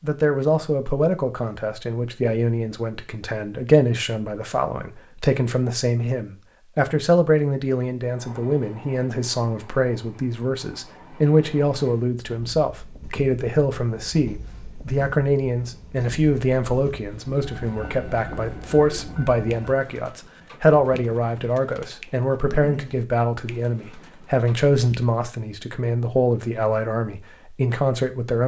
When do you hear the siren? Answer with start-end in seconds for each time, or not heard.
not heard.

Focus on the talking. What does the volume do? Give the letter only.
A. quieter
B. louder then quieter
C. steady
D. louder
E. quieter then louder
C.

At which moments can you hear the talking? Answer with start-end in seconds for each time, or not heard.
0.0-28.4.